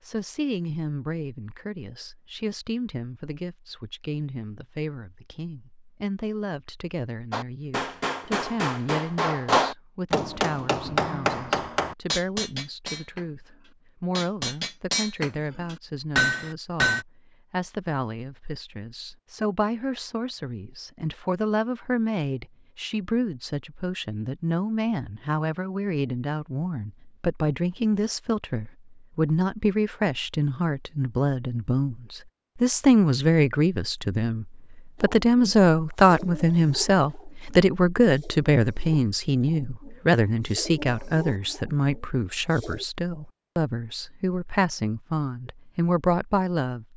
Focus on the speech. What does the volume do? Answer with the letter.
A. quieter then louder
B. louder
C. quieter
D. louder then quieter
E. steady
B.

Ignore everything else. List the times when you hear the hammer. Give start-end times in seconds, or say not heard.
7.3-17.1.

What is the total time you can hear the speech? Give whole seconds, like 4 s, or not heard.
47 s.